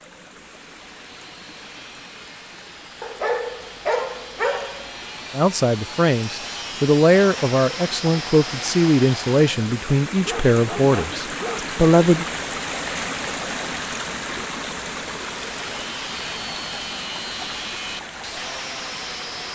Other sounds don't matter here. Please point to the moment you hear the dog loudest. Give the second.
4 s.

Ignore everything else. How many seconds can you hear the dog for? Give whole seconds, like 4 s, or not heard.
3 s.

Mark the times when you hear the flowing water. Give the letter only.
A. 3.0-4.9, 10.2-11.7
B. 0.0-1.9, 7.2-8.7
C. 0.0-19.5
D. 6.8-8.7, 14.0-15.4
C.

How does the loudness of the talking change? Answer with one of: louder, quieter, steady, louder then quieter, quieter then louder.
steady.